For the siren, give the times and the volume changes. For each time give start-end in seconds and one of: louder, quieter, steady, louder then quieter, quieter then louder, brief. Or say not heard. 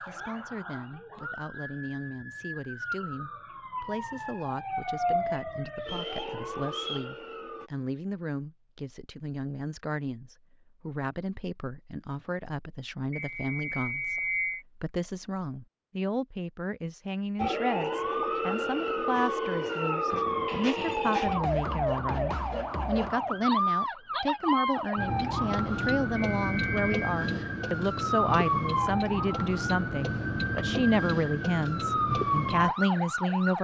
0.0-7.7 louder then quieter
17.4-33.5 steady.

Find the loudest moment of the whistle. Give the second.
14 s.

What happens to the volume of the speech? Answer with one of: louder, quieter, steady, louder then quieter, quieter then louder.
louder.